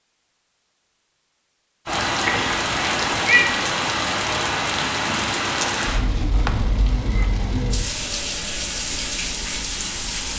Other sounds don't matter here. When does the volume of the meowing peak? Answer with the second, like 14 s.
3 s.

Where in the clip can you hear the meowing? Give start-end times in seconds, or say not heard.
1.9-3.5, 6.3-7.3.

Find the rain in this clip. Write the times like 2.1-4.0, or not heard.
1.9-10.3.